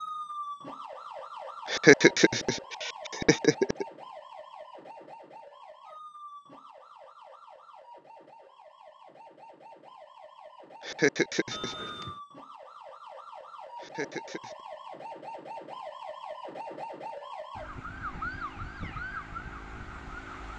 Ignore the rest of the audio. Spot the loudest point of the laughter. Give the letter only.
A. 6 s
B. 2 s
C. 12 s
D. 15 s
B.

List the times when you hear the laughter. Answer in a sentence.
The laughter can be heard from 1.6 to 3.9 s, from 10.8 to 11.8 s and from 13.8 to 14.6 s.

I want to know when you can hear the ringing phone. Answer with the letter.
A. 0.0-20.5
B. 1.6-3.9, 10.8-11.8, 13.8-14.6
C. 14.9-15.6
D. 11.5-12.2
D.